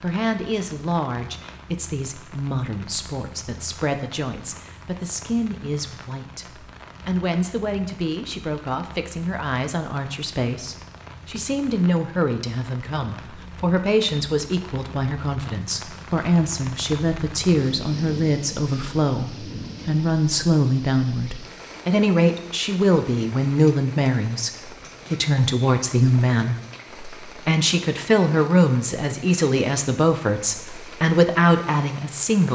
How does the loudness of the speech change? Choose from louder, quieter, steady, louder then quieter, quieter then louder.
louder.